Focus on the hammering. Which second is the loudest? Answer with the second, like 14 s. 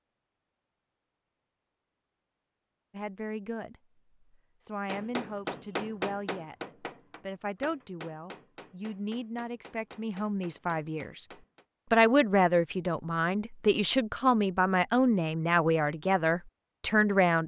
6 s.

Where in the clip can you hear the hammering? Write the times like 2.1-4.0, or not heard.
4.8-11.7.